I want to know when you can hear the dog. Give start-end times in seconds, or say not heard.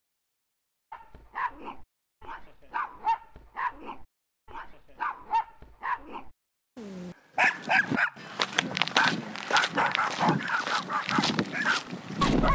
0.9-12.5.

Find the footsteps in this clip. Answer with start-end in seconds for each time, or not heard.
7.4-12.5.